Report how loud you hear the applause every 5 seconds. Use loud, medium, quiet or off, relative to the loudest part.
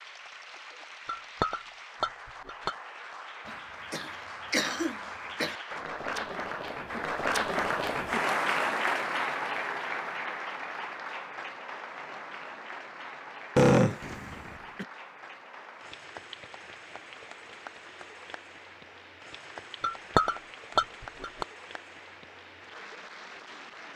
quiet, loud, medium, quiet, quiet.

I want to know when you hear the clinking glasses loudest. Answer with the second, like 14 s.
20 s.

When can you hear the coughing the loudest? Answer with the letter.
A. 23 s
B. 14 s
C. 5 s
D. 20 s
B.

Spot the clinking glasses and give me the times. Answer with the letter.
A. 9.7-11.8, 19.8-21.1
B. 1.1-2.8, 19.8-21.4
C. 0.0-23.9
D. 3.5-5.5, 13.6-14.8
B.